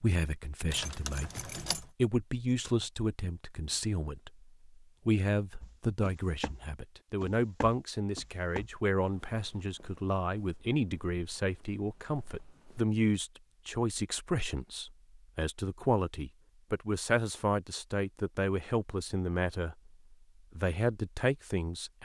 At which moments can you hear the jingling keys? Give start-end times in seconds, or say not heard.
0.7-1.9.